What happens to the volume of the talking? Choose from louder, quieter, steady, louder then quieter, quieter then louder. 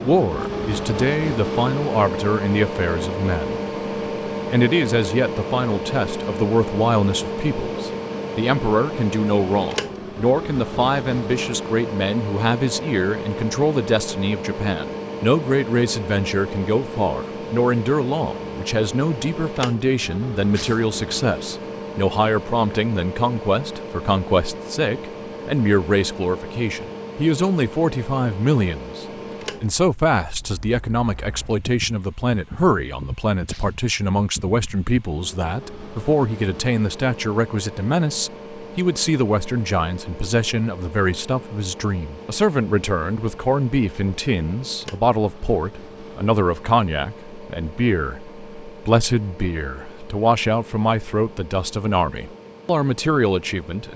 steady.